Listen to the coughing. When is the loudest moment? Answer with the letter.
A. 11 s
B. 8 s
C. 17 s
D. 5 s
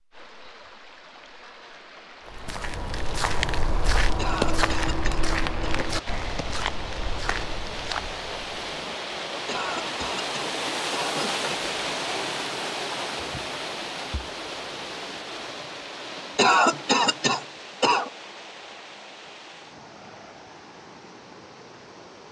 C.